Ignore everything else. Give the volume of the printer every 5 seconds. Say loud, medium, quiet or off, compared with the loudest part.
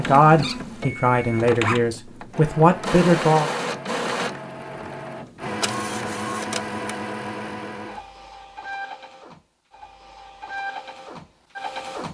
loud, loud, medium.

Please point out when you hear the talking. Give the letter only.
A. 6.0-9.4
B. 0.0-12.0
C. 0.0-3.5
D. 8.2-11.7
C.